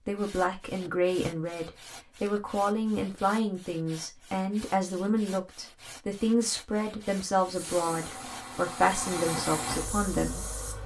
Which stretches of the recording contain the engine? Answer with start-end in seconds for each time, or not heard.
7.5-10.8.